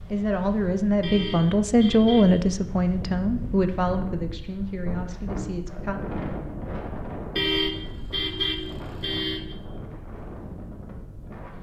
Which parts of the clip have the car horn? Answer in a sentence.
You can hear the car horn from 1.0 to 2.5 s and from 7.3 to 9.6 s.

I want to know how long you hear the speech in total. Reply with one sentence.
You can hear the speech for 6 seconds altogether.